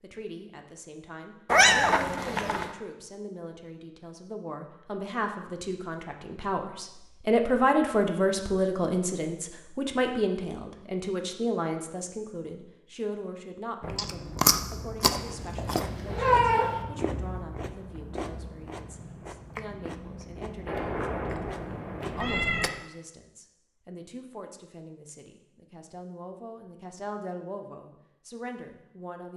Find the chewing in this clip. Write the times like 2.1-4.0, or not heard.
13.8-22.7.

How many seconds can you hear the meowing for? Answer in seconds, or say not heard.
5 s.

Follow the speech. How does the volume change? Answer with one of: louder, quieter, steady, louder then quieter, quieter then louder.
louder then quieter.